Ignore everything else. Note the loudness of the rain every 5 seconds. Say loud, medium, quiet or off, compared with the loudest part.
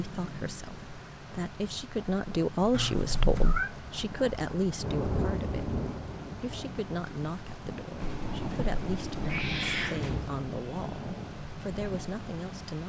medium, loud, loud.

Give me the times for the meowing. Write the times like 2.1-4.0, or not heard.
2.7-3.7, 8.0-10.3.